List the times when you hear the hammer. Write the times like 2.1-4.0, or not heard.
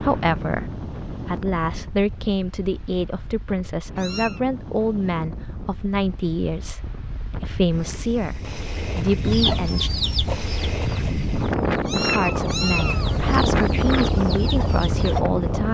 not heard.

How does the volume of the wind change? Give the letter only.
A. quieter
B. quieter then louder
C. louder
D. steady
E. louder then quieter
C.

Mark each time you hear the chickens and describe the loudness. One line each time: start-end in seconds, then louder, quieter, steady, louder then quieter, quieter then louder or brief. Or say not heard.
9.2-15.2 quieter then louder.